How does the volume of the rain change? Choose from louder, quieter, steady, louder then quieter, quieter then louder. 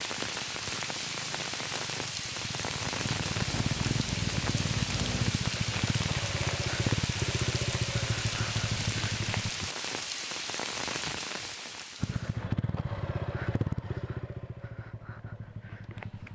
steady.